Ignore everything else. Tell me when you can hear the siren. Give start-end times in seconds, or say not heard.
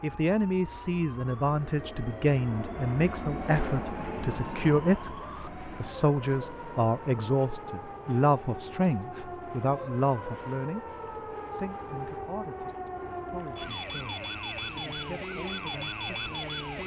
0.0-16.8.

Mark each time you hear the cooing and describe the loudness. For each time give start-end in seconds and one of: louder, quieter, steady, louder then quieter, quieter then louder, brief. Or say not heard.
not heard.